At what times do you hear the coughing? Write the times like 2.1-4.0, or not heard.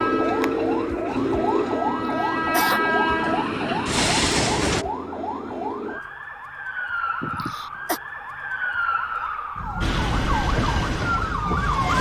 1.9-2.8, 7.2-8.0.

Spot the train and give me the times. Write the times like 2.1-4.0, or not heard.
0.0-4.8, 9.8-11.9.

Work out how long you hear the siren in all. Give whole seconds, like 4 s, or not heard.
12 s.